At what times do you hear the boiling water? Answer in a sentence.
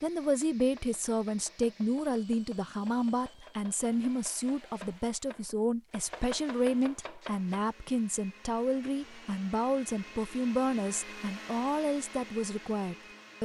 You can't hear the boiling water here.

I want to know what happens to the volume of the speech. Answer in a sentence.
The volume of the speech stays about the same.